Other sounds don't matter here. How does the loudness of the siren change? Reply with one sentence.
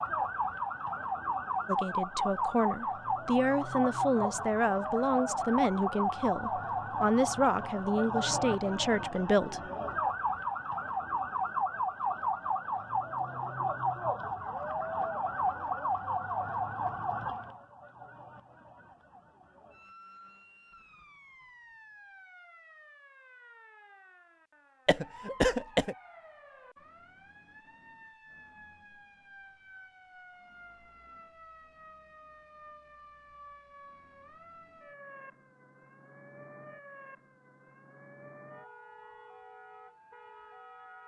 The volume of the siren goes down.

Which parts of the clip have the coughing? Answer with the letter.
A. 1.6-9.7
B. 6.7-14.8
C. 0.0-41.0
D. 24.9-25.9
D.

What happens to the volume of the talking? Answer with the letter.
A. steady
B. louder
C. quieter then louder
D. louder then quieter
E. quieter
A.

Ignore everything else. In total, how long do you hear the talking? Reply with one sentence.
The talking can be heard for 8 seconds in total.